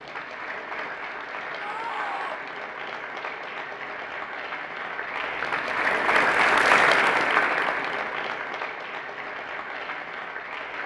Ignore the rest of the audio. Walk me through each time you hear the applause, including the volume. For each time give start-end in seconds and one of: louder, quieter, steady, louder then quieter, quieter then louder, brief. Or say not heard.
0.0-10.8 louder then quieter.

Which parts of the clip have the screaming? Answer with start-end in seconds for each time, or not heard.
1.6-2.4.